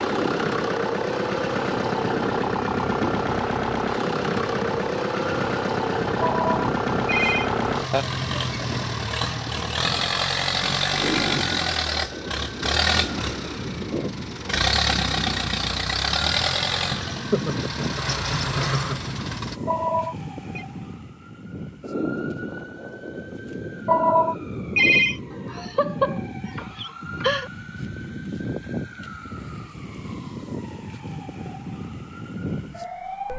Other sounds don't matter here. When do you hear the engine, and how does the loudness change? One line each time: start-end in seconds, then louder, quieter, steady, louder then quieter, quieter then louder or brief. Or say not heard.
0.0-19.6 steady.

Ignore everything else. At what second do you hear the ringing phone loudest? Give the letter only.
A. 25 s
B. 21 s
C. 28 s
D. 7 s
A.